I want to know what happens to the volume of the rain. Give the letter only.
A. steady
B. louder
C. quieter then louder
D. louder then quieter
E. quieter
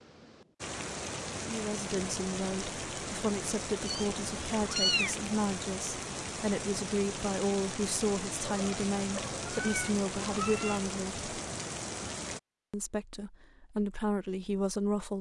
A.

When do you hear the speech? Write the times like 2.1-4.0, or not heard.
1.4-11.2, 12.7-15.1.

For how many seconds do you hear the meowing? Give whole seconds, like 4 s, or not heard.
4 s.